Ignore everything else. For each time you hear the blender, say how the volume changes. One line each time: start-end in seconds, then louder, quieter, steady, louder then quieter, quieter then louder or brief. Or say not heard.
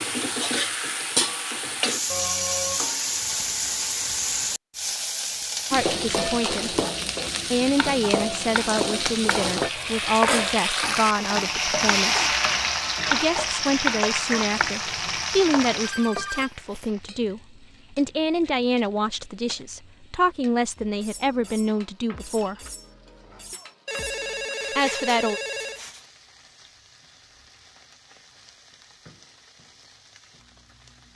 not heard.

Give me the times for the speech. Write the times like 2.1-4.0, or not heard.
5.7-6.8, 7.5-12.3, 13.1-22.6, 24.8-25.4.